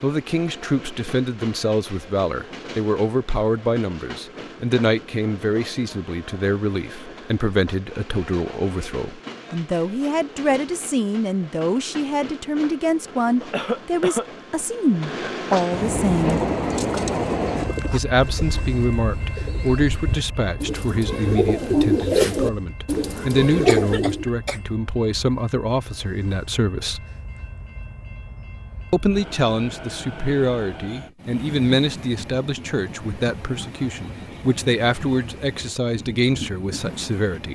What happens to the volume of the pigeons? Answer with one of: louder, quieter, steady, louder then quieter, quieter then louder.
quieter then louder.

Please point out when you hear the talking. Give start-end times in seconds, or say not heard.
0.0-16.4, 17.9-27.1, 28.9-37.5.